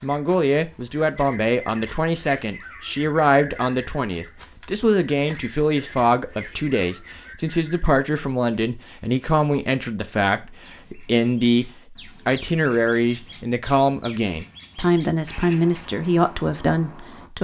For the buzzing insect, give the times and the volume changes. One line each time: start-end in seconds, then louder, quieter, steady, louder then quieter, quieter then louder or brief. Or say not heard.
not heard.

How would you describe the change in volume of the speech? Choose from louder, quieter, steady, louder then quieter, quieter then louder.
steady.